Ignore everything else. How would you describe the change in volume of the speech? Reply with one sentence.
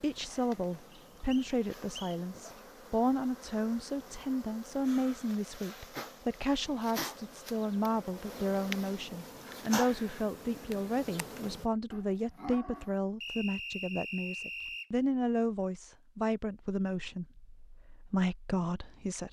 The loudness of the speech stays about the same.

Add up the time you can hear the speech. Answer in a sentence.
The speech can be heard for 19 seconds in total.